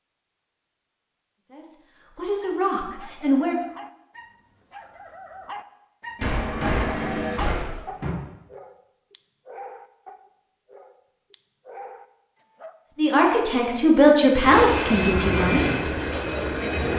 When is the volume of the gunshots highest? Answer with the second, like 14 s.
7 s.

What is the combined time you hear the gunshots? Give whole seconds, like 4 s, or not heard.
2 s.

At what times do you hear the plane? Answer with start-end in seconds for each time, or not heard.
14.3-16.9.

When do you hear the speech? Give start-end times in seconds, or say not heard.
1.4-3.6, 12.9-15.7.